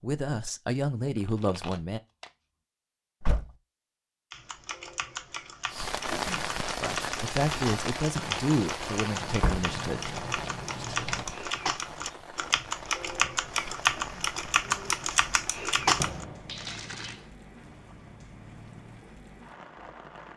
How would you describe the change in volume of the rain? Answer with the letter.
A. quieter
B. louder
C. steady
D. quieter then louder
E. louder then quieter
A.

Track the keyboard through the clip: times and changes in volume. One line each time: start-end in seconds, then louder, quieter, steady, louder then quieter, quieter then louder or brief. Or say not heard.
4.3-16.2 louder.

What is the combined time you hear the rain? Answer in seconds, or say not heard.
15 s.